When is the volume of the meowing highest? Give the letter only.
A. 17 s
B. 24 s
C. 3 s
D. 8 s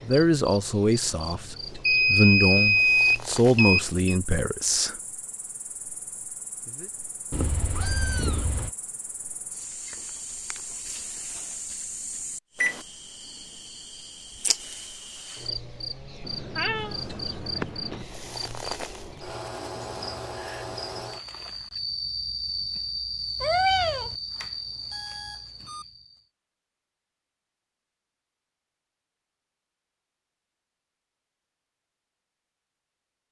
B.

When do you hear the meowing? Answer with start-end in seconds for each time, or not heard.
7.3-8.7, 16.2-18.1, 23.4-24.1.